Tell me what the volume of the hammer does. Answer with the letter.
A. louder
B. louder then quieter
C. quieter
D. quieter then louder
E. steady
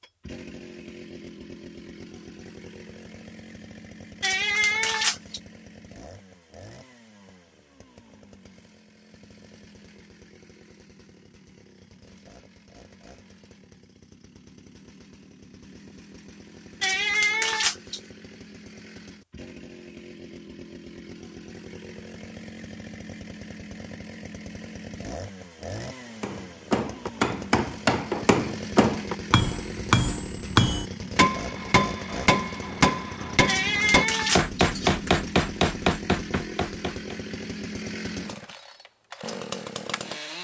E.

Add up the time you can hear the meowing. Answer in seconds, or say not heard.
4 s.